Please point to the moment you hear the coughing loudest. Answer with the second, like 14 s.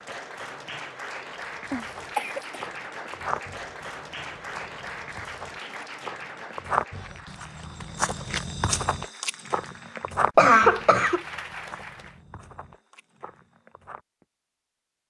11 s.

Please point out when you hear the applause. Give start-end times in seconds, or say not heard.
0.0-12.2.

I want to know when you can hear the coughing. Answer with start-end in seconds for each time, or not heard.
1.7-2.6, 10.3-11.2.